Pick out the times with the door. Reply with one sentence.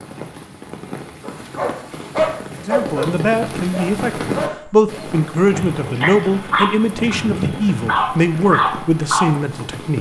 You can't hear the door here.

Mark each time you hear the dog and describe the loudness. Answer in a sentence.
You can hear the dog from 1.2 to 9.3 s, getting quieter then louder.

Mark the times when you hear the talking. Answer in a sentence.
The talking can be heard from 2.6 to 9.9 s.